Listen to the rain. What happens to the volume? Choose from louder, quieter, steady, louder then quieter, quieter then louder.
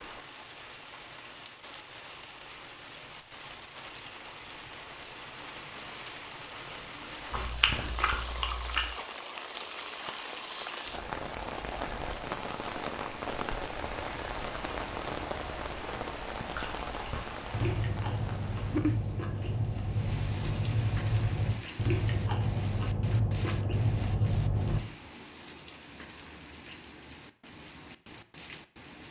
louder then quieter.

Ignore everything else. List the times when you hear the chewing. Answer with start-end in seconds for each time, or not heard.
7.3-8.9, 16.5-24.8.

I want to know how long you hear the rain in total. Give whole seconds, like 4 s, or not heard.
29 s.